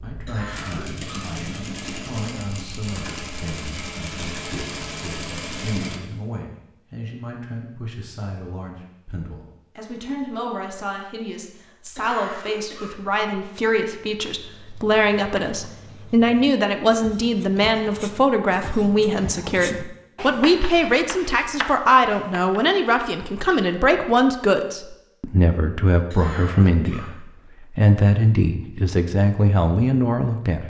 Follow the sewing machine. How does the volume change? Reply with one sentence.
The loudness of the sewing machine stays about the same.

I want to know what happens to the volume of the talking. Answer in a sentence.
The volume of the talking goes up.